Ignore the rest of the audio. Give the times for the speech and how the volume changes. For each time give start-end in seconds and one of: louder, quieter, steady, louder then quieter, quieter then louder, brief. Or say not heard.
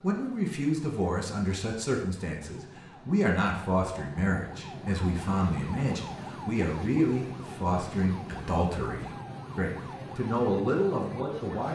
0.0-11.6 steady.